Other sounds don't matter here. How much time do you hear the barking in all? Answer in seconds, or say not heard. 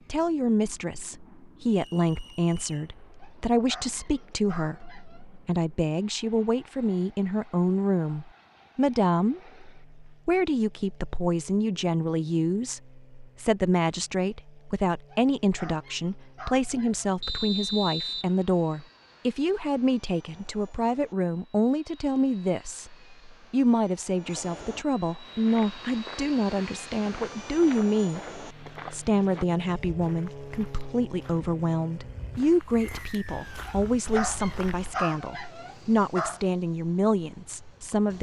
7 s.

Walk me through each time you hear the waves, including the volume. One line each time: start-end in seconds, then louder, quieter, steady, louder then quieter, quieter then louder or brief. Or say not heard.
not heard.